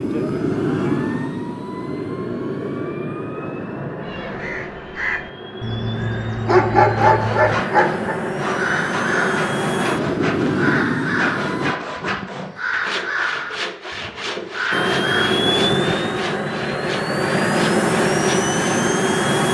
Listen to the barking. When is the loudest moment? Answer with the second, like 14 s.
7 s.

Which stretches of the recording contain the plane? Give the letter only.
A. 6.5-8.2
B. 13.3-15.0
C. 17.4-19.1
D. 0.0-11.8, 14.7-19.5
D.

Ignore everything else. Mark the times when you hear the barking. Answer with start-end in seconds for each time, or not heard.
6.5-8.2.